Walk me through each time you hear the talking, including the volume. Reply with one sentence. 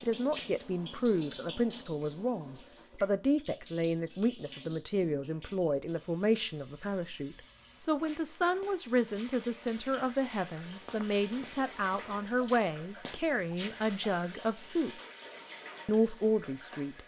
You can hear the talking from 0.0 to 14.9 s, at a steady volume; and briefly from 15.8 to 17.0 s.